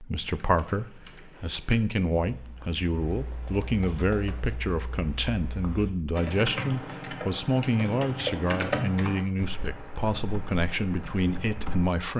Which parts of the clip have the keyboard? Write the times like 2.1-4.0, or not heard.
0.1-11.9.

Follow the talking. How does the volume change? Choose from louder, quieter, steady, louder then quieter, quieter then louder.
steady.